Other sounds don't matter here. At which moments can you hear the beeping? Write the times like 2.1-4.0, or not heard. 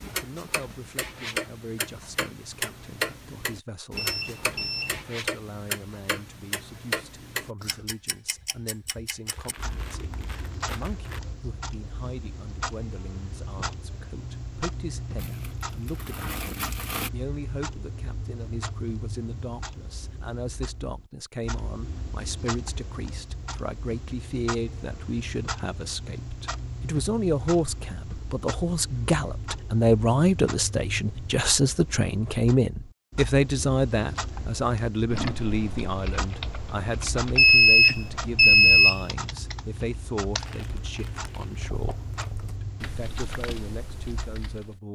4.0-5.0, 37.4-39.0.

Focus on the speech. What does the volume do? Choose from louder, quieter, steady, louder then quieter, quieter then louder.
louder then quieter.